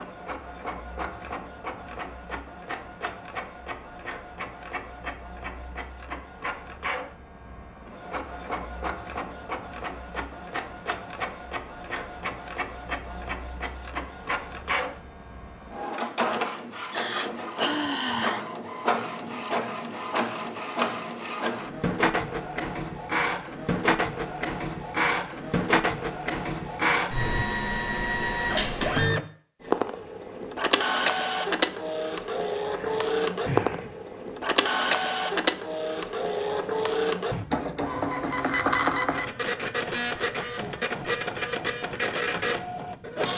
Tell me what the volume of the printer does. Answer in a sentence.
The loudness of the printer goes up.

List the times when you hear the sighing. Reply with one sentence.
You can hear the sighing from 16.9 to 18.4 s and from 32.7 to 34.0 s.